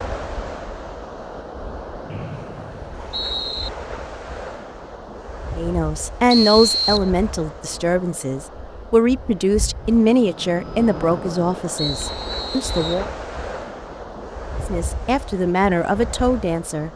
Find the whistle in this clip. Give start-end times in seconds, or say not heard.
2.1-3.7, 6.3-7.1, 11.8-13.1.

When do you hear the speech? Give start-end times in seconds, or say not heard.
5.5-13.1, 14.7-16.9.